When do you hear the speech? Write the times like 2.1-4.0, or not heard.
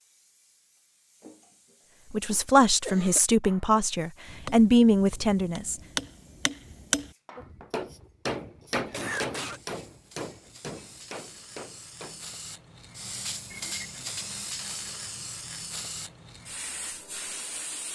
2.1-5.8.